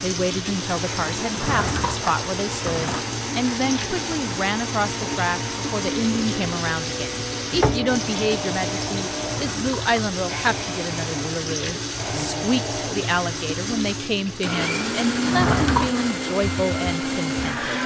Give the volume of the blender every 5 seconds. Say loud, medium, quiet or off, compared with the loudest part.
medium, medium, medium, loud.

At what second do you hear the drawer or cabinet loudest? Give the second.
16 s.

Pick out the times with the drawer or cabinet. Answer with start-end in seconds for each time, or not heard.
1.2-3.0, 9.2-9.9, 15.2-16.1.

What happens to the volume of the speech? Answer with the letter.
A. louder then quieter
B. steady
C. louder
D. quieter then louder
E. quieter
B.